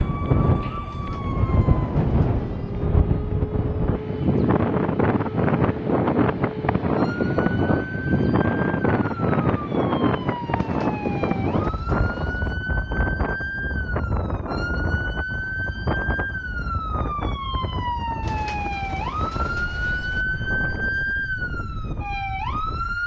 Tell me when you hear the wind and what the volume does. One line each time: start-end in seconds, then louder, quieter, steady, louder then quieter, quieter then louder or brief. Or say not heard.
0.0-23.0 quieter.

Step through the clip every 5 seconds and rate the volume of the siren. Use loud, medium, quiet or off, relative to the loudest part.
medium, medium, medium, loud, loud.